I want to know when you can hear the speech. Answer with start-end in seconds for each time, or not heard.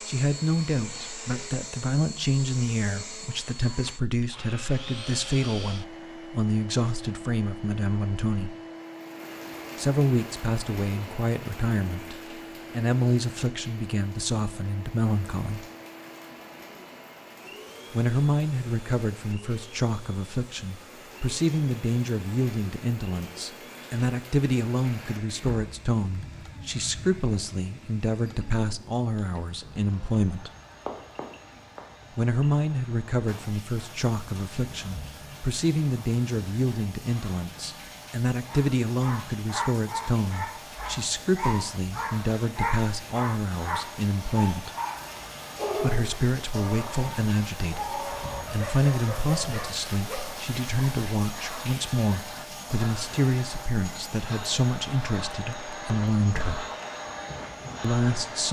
0.1-8.6, 9.8-15.7, 17.9-30.5, 32.1-44.7, 45.8-56.6, 57.8-58.4.